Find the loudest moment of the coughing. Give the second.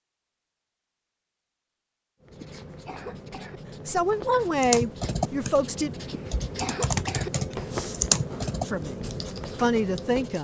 7 s.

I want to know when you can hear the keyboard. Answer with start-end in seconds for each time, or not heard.
4.6-10.2.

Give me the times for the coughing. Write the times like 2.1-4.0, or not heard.
2.4-3.6, 6.1-7.3.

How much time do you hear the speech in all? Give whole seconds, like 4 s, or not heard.
4 s.